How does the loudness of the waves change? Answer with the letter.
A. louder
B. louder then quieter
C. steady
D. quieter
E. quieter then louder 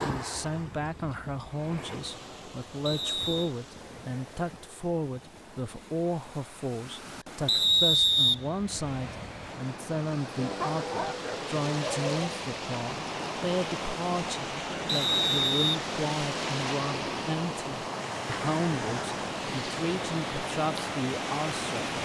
A.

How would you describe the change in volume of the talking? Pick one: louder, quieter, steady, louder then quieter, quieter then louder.
steady.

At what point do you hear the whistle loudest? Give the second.
8 s.